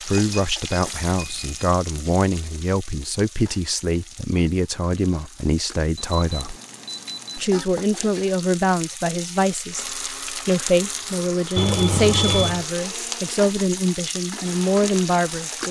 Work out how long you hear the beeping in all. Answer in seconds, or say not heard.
4 s.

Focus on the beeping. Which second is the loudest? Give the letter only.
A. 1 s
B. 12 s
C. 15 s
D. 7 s
B.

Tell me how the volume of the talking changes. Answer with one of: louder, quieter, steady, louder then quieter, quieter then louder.
steady.